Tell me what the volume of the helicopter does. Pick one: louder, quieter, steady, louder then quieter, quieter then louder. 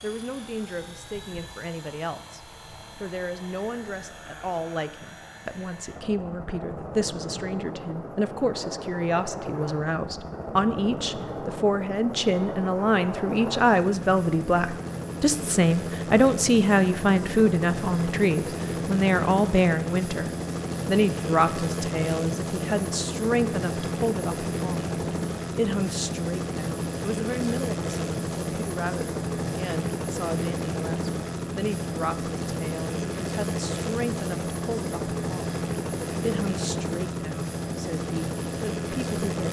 louder.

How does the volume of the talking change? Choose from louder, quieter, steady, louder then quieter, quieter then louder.
louder then quieter.